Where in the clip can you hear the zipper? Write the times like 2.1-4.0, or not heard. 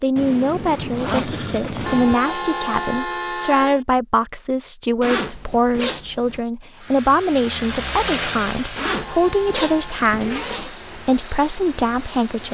0.1-2.1, 5.0-6.4, 8.8-10.8.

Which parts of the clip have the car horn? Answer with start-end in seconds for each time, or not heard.
1.9-3.9, 8.8-10.1.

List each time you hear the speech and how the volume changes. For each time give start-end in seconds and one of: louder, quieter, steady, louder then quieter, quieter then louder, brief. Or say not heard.
0.0-12.4 steady.